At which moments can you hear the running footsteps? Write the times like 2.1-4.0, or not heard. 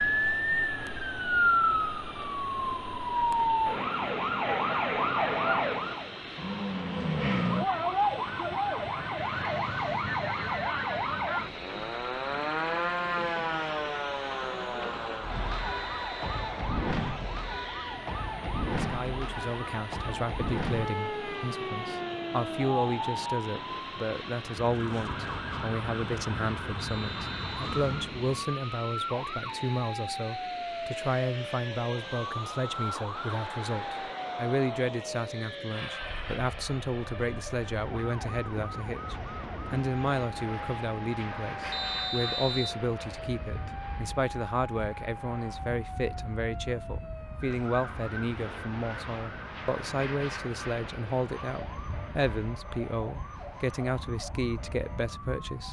not heard.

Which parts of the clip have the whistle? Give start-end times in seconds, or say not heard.
15.5-16.6, 26.8-27.9, 41.7-42.8.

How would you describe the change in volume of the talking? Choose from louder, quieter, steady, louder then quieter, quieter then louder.
steady.